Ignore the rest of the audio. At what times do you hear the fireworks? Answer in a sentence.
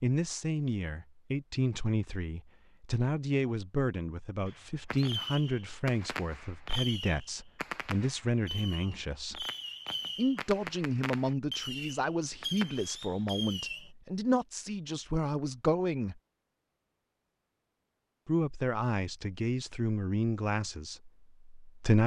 You can hear the fireworks from 4.5 to 13.9 s.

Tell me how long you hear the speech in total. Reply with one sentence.
You can hear the speech for 19 seconds altogether.